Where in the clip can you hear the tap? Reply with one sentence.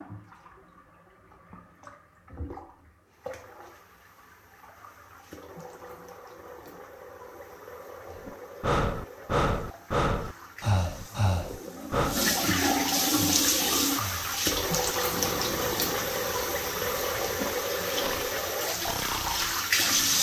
The tap can be heard from 0.0 to 20.1 s.